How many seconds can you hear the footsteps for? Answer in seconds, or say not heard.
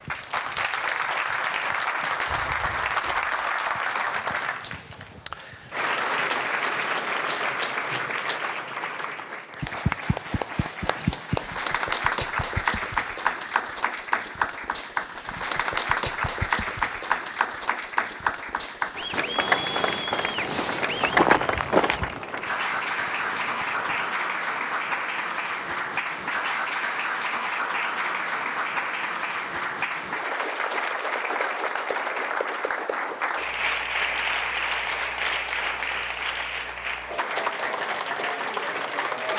2 s.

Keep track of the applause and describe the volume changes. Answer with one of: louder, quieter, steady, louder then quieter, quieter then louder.
steady.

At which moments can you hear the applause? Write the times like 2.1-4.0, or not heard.
0.0-39.3.